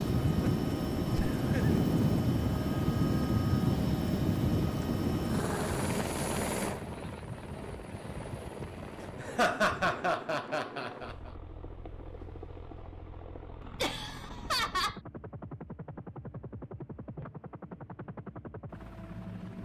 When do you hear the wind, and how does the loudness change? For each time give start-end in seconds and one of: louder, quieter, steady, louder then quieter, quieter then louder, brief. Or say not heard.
0.0-9.9 quieter.